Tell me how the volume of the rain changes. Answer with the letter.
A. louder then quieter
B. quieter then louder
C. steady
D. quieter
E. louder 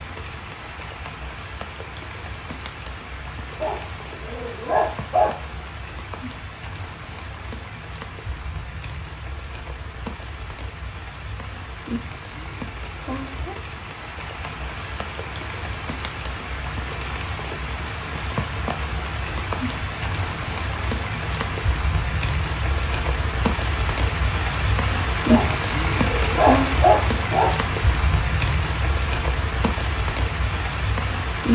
E.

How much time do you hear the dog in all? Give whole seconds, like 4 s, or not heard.
4 s.